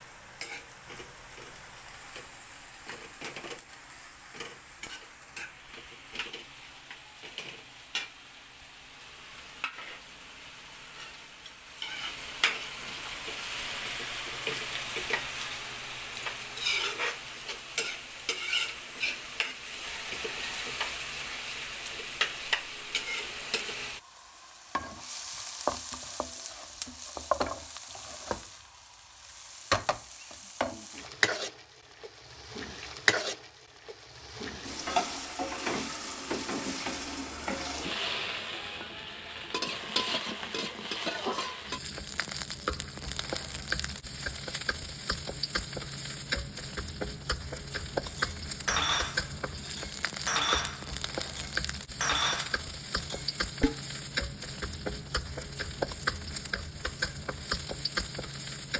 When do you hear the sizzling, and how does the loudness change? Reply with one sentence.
The sizzling can be heard from 0.0 to 58.7 s, getting louder.